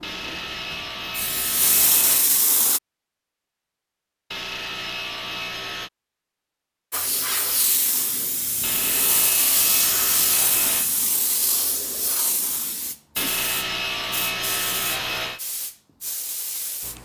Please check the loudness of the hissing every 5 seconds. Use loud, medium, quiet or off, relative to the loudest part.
loud, loud, loud, medium.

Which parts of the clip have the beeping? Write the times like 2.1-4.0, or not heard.
not heard.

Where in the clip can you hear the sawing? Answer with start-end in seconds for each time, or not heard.
0.0-2.3, 4.3-5.9, 8.6-10.9, 13.2-15.4.